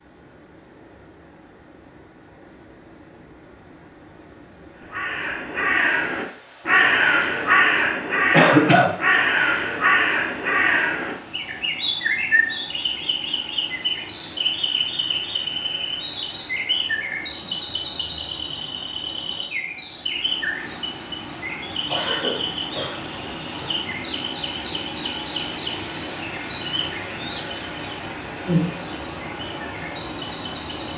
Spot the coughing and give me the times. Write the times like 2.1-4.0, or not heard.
8.3-8.9, 21.9-23.8.